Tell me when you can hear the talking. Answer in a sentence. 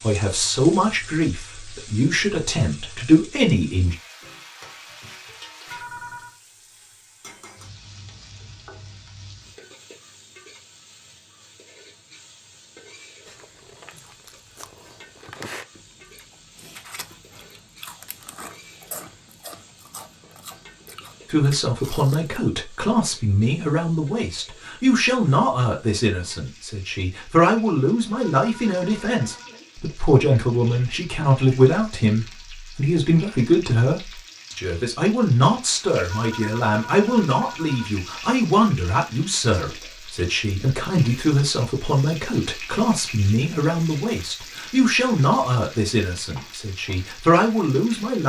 The talking can be heard from 0.0 to 4.0 s and from 21.3 to 48.2 s.